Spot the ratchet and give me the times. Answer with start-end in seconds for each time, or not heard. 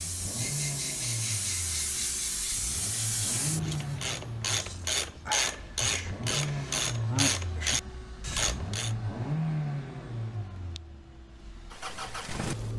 3.5-8.9.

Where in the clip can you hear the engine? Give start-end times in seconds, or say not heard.
0.0-12.7.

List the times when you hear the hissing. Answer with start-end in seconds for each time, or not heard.
0.0-4.9.